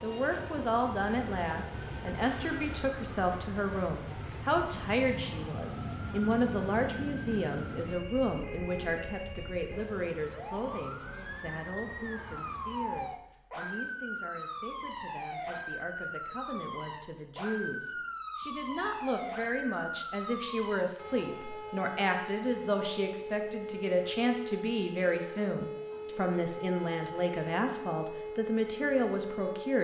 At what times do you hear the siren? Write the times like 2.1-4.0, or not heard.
0.0-29.7.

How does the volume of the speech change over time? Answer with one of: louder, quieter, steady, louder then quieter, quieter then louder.
quieter then louder.